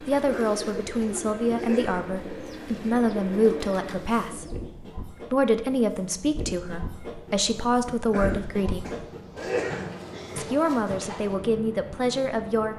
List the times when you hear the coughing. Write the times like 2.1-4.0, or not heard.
0.2-2.0, 8.1-9.9.